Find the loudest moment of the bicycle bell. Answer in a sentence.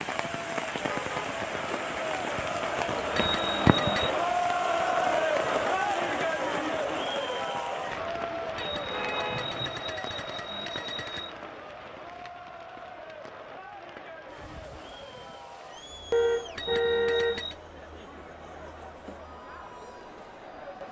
The volume of the bicycle bell peaks at 4 seconds.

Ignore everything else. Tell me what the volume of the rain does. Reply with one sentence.
The volume of the rain goes down.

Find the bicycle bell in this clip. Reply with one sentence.
You can hear the bicycle bell from 3.1 to 4.2 s, from 8.6 to 11.3 s and from 16.6 to 17.6 s.